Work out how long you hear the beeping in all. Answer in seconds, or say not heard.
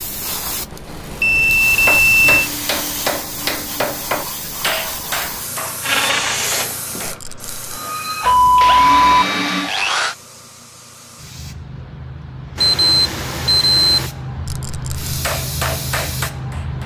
4 s.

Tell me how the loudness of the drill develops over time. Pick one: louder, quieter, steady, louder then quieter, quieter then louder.
quieter then louder.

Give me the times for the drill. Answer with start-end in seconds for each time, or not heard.
5.8-10.2.